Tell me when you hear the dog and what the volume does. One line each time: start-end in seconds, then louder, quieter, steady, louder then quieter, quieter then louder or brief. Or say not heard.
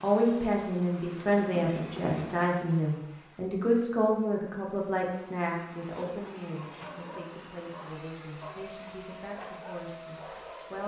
6.5-10.8 steady.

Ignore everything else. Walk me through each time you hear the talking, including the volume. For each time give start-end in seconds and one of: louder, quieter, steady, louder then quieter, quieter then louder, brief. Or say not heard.
0.0-10.8 quieter.